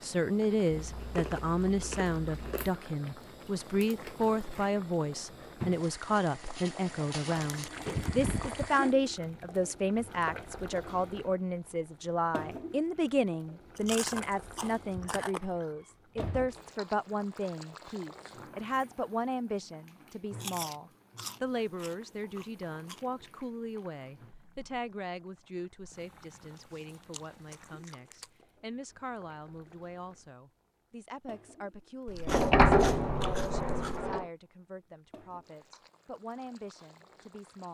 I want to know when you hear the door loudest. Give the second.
33 s.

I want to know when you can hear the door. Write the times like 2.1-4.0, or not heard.
7.7-8.6, 15.4-16.6, 32.2-34.2.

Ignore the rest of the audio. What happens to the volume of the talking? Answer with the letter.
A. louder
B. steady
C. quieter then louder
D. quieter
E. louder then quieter
D.